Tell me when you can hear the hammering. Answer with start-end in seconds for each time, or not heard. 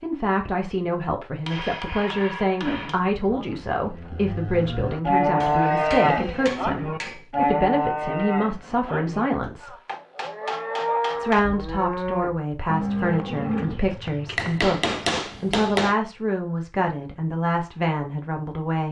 1.4-3.0, 5.4-7.2, 9.4-11.4, 14.3-15.9.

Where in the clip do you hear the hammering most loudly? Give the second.
15 s.